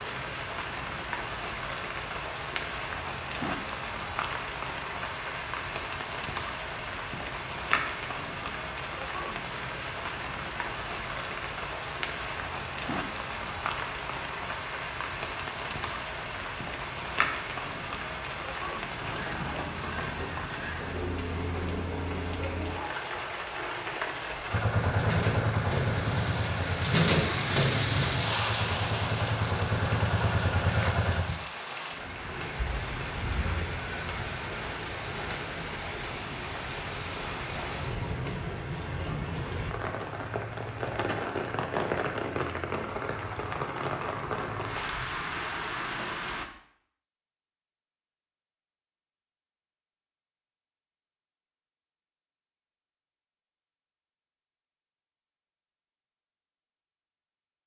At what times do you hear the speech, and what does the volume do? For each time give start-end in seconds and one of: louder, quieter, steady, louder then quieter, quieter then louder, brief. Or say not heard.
not heard.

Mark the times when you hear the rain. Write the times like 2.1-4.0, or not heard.
0.0-46.5.